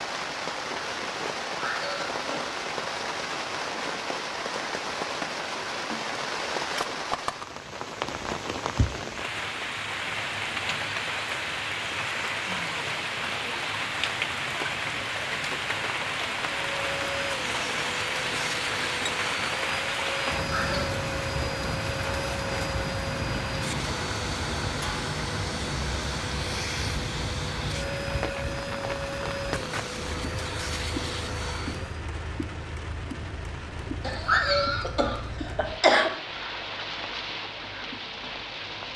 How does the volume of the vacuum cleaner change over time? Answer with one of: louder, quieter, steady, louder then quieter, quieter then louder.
steady.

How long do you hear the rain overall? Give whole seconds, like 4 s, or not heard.
39 s.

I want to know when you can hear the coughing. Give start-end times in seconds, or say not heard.
1.6-2.5, 20.5-20.9, 34.0-36.1.